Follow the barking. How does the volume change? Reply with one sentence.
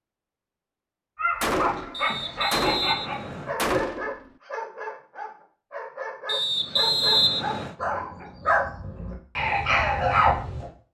The loudness of the barking goes down, then up.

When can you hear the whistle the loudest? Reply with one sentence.
The volume of the whistle peaks at 7 seconds.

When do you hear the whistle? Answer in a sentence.
You can hear the whistle from 1.9 to 3.5 s and from 6.2 to 7.8 s.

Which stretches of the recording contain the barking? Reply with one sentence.
You can hear the barking from 1.1 to 10.7 s.